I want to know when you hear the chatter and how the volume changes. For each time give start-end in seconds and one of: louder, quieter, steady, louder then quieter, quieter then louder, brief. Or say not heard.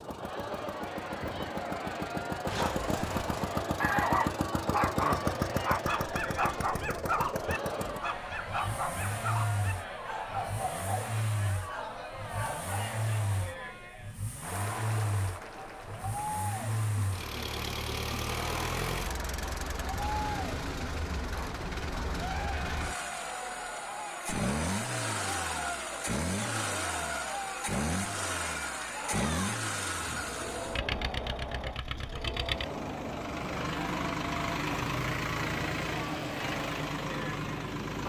0.0-37.8 steady.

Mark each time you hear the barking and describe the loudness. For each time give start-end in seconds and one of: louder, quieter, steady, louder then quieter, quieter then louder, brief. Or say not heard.
2.5-12.9 quieter.